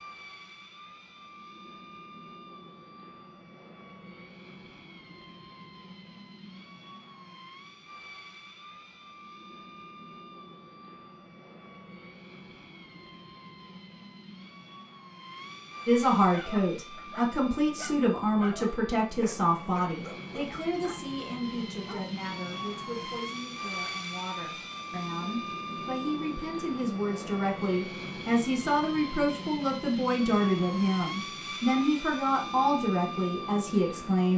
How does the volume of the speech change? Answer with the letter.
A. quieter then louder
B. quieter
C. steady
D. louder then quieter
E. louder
A.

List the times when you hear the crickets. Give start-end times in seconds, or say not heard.
not heard.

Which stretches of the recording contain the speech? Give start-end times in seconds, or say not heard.
15.8-34.3.